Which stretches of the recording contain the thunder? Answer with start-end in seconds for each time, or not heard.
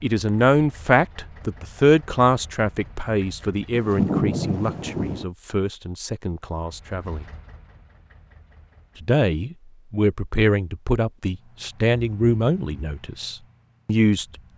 3.7-5.2.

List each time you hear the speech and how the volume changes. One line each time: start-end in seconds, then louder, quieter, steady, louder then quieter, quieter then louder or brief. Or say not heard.
0.0-7.2 quieter
9.0-14.2 quieter.